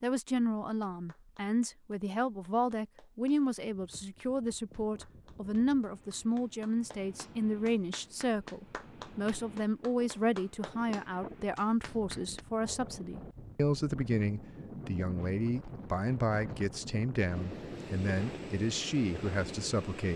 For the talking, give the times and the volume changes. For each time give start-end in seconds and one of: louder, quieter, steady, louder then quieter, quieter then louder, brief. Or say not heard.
0.0-20.1 steady.